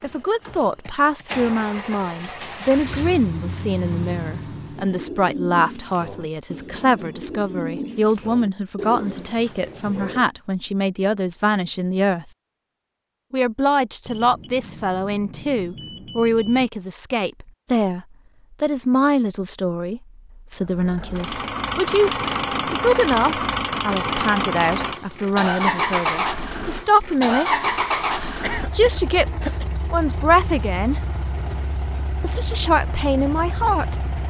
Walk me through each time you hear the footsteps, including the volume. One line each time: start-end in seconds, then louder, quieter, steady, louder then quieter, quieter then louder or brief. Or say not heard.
not heard.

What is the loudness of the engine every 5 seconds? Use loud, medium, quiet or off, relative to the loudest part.
medium, off, off, off, loud, loud, medium.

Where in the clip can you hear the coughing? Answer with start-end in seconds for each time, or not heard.
28.4-29.6.